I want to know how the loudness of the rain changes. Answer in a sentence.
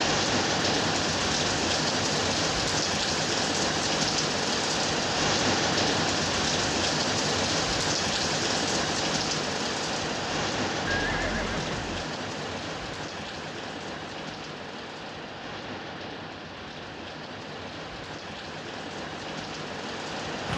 The loudness of the rain goes down.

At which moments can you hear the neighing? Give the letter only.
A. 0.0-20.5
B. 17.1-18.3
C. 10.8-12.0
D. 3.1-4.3
C.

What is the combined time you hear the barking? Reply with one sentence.
You can't hear the barking here.